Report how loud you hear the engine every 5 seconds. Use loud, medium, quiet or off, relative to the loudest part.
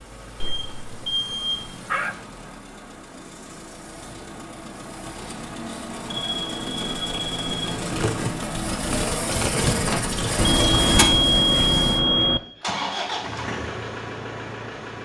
quiet, loud, loud.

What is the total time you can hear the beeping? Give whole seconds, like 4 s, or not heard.
5 s.